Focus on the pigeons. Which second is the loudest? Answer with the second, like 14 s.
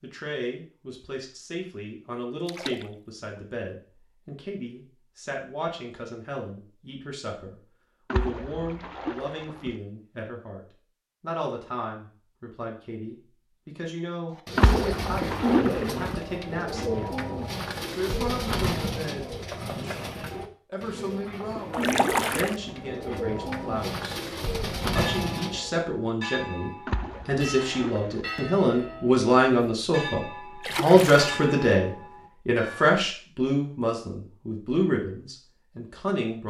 16 s.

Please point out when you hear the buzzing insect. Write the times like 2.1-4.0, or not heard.
not heard.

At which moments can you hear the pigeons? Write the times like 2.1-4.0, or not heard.
14.3-25.7.